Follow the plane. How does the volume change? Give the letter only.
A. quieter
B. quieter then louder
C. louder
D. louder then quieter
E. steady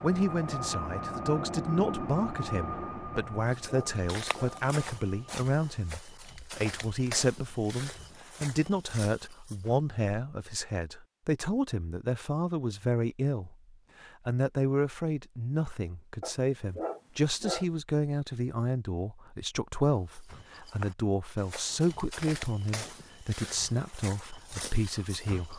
A.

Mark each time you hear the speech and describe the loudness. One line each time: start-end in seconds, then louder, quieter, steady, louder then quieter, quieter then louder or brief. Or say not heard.
0.0-25.5 steady.